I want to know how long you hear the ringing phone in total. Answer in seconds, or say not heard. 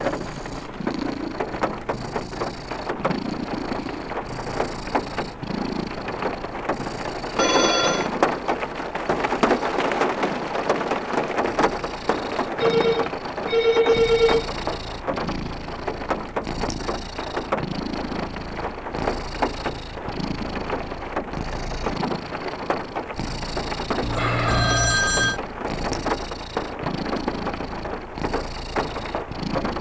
4 s.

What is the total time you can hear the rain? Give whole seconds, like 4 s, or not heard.
30 s.